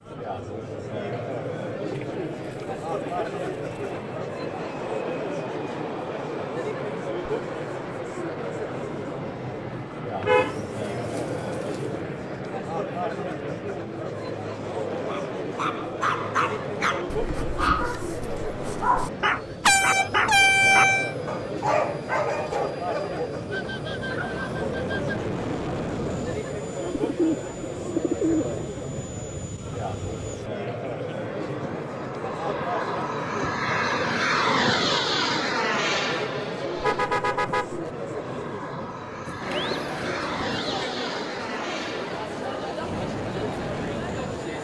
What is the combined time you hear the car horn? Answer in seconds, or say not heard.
4 s.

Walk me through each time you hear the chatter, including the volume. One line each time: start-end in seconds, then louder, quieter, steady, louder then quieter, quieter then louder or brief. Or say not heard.
0.0-44.5 steady.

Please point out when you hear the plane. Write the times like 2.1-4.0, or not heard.
3.5-44.5.